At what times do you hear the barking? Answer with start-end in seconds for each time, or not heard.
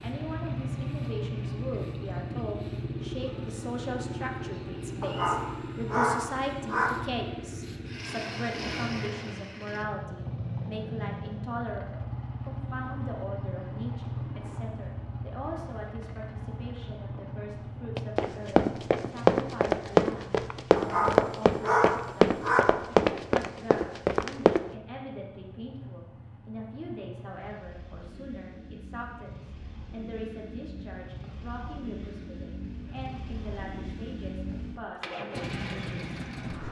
5.0-6.9, 20.8-22.6.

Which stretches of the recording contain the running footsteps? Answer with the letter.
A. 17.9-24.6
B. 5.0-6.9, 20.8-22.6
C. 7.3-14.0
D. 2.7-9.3
A.